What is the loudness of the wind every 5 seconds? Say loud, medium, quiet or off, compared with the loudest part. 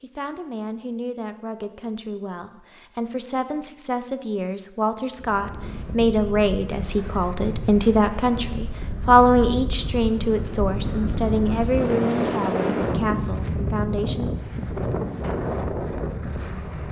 off, medium, loud, loud.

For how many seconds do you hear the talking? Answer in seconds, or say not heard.
14 s.